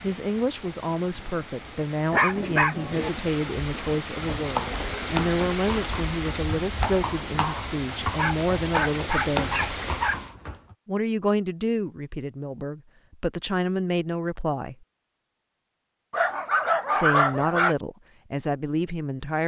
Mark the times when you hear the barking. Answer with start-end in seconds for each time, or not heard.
2.1-3.1, 8.2-10.2, 16.1-17.8.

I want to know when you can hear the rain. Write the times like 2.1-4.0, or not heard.
0.0-10.3.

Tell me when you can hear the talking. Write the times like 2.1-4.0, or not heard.
0.0-9.7, 10.8-14.8, 16.9-19.4.